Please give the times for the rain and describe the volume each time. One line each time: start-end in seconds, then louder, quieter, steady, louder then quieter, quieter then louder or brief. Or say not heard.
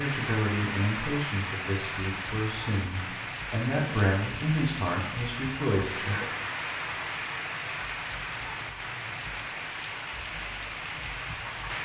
0.0-11.8 steady.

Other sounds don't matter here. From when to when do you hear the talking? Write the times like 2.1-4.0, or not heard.
0.0-6.2.